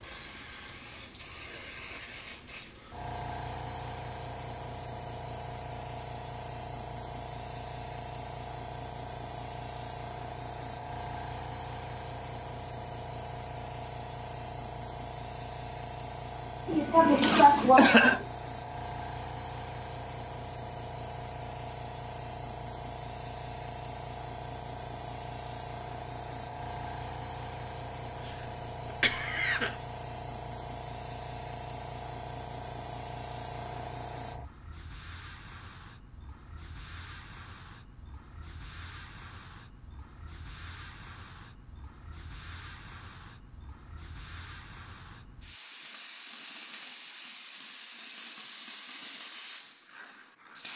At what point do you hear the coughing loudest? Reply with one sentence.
The volume of the coughing peaks at 18 seconds.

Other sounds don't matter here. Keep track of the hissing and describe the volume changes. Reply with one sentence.
The loudness of the hissing stays about the same.